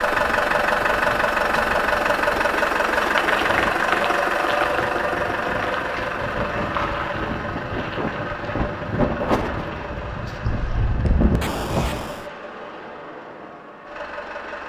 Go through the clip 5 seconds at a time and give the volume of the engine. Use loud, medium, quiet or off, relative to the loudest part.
loud, medium, quiet.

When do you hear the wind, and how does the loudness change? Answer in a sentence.
You can hear the wind from 0.0 to 12.1 s, getting louder.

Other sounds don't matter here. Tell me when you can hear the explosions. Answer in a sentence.
You can hear the explosions from 11.4 to 12.3 s.